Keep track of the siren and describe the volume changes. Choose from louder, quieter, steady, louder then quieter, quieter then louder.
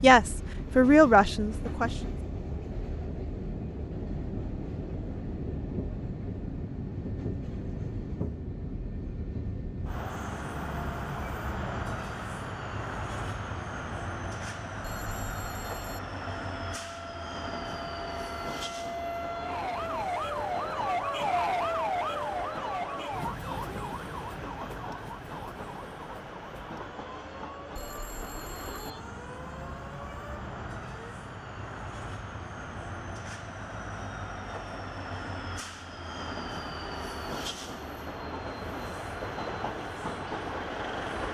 louder then quieter.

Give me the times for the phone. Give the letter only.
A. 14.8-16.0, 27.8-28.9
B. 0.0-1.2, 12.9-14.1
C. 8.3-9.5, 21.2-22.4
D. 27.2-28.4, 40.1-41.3
A.